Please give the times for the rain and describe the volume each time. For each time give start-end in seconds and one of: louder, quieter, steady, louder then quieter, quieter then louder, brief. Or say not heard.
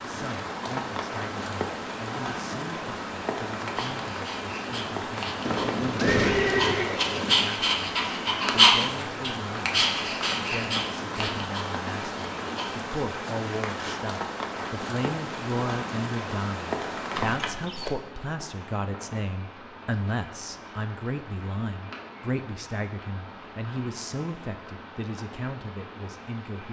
0.0-26.6 quieter.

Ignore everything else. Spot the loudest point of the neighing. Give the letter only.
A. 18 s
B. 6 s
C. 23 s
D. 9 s
B.